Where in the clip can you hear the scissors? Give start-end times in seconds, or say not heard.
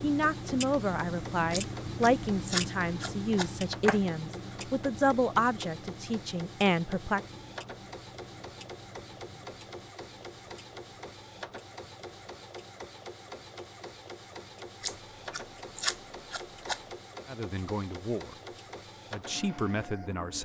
1.5-4.0, 14.8-16.8.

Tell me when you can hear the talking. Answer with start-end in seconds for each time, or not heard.
0.0-7.2, 17.2-20.3.